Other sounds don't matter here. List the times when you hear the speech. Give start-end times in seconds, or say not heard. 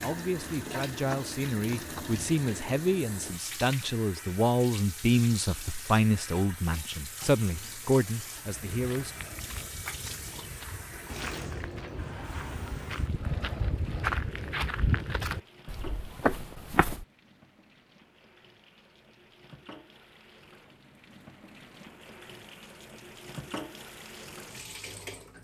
0.0-9.2.